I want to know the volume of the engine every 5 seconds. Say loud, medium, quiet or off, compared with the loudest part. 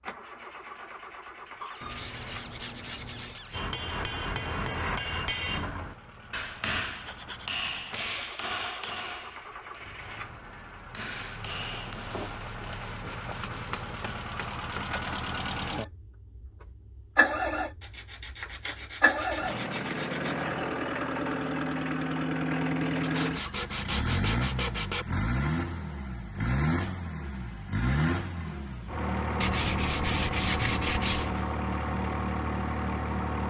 quiet, quiet, medium, loud, loud, loud, loud.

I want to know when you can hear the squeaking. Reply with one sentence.
The squeaking can be heard from 1.6 to 3.6 s.